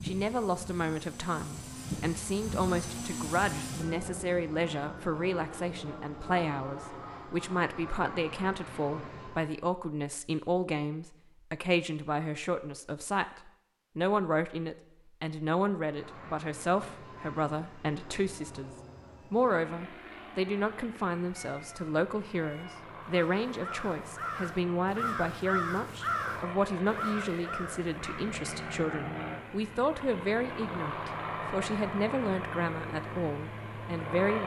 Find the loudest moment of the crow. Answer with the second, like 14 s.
26 s.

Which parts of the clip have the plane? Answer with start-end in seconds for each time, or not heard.
0.0-9.5, 15.8-34.4.